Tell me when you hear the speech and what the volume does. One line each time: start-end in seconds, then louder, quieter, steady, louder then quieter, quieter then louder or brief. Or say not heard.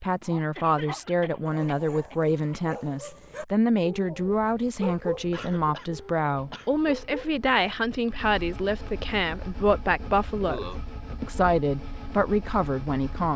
0.0-13.3 steady.